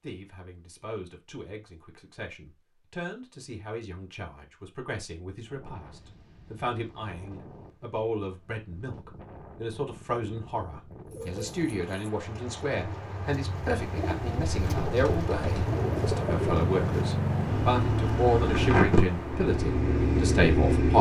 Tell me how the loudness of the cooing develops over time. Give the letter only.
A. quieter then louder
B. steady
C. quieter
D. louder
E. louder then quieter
D.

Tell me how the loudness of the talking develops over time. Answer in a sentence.
The volume of the talking goes up.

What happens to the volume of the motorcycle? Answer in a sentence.
The loudness of the motorcycle goes up.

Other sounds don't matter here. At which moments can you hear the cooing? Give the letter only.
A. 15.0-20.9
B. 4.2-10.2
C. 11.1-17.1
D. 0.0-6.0
C.